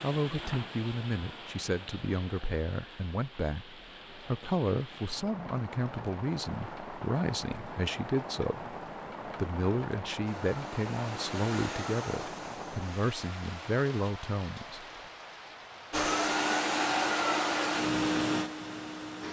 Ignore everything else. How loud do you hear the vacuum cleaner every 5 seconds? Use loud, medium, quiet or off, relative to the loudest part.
off, off, quiet, loud.